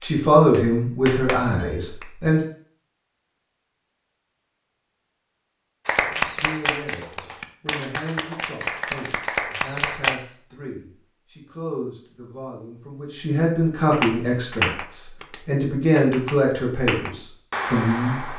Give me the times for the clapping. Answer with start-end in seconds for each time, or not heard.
0.0-2.2, 5.8-10.2, 13.9-18.3.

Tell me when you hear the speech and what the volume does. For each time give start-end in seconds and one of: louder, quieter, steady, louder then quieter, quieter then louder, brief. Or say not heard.
0.0-2.4 brief
6.0-18.3 louder.